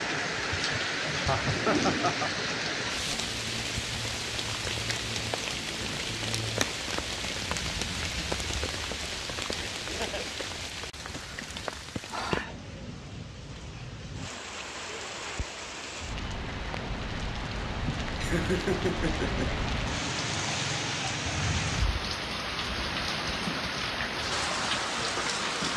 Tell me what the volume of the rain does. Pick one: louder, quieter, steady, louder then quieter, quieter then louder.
quieter then louder.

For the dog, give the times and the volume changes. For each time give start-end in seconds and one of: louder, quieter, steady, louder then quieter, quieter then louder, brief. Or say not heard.
not heard.